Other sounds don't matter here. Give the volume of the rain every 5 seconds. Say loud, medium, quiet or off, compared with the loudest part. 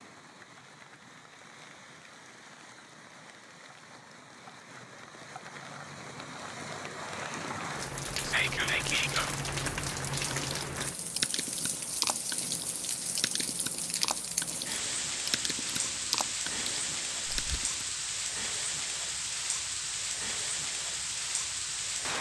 quiet, loud, loud, loud, loud.